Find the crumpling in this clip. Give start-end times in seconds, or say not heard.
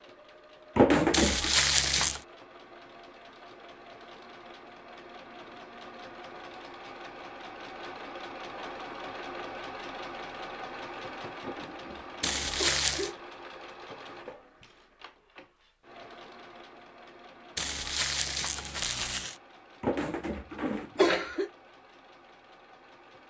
1.1-2.2, 12.2-13.1, 17.6-19.4.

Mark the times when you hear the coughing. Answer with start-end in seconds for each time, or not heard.
0.8-1.6, 11.4-13.2, 19.8-21.5.